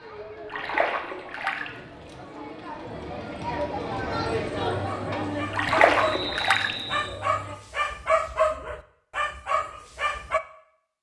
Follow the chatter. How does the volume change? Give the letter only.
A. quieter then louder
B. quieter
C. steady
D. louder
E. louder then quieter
E.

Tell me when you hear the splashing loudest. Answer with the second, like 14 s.
6 s.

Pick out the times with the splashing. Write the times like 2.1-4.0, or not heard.
0.5-1.7, 5.5-6.8.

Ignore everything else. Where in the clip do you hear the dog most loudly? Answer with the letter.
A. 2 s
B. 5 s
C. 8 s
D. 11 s
C.